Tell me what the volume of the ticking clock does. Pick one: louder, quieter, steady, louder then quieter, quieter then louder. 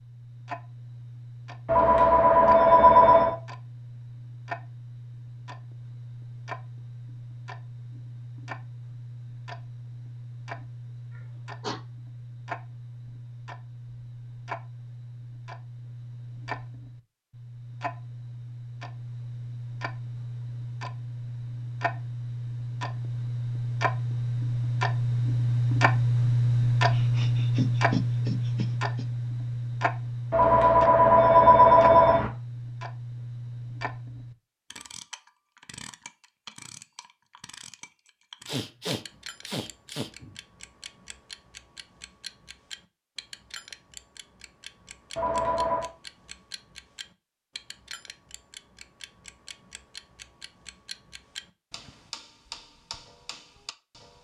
louder then quieter.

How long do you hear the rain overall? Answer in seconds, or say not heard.
not heard.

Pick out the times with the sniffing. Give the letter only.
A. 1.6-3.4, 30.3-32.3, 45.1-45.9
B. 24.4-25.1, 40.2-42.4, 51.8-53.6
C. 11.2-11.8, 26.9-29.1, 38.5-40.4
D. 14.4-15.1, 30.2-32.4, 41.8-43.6
C.